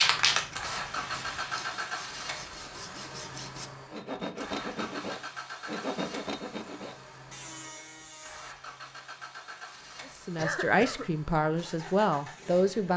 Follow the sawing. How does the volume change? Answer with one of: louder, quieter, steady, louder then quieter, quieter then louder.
louder then quieter.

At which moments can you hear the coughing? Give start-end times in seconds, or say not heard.
10.3-11.1.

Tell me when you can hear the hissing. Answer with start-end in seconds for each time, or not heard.
0.0-1.8.